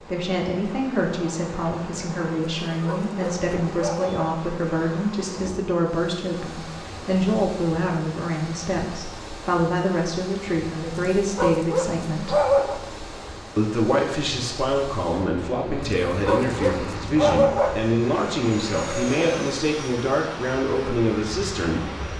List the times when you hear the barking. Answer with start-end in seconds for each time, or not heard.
2.9-4.3, 11.3-12.8, 16.2-17.9.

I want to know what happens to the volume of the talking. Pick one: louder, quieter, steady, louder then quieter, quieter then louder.
steady.